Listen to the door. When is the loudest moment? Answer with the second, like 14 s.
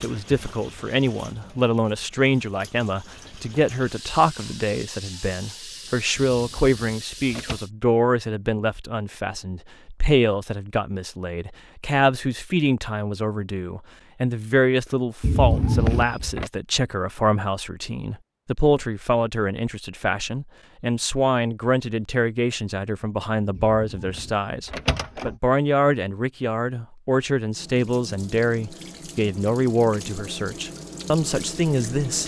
16 s.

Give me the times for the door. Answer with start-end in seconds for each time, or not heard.
6.3-7.6, 15.2-16.5, 23.6-25.4.